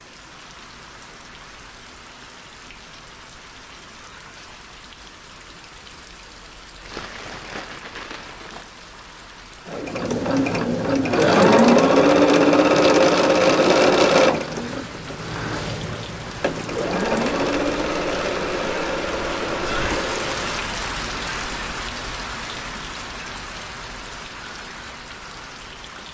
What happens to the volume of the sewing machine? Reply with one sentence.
The volume of the sewing machine goes down.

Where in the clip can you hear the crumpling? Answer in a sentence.
The crumpling can be heard from 6.8 to 8.7 s.